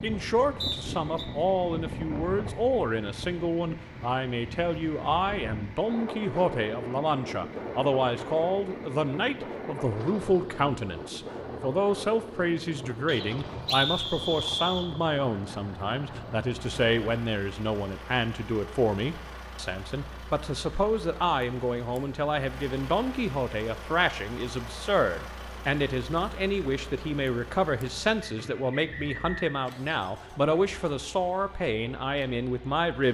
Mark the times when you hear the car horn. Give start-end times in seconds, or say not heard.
not heard.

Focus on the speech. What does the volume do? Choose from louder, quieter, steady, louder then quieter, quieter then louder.
steady.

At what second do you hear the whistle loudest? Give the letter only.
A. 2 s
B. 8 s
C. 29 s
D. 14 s
D.